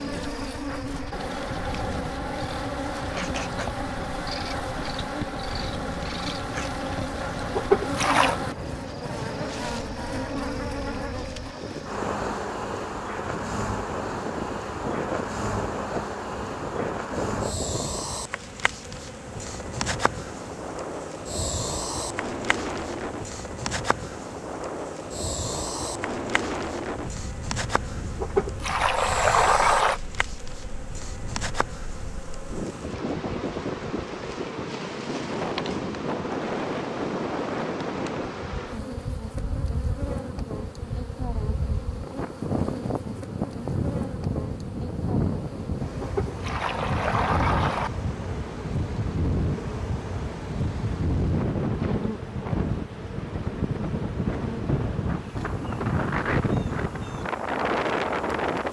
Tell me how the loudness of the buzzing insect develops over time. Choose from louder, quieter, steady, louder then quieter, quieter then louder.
quieter.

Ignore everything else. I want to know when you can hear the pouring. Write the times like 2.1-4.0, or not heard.
7.5-8.3, 28.2-30.0, 46.0-47.9.